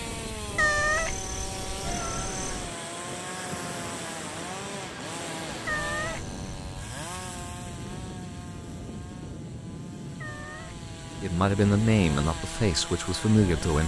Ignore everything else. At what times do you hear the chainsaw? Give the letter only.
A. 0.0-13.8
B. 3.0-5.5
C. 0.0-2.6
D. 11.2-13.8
A.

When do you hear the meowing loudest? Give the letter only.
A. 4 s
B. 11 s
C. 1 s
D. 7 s
C.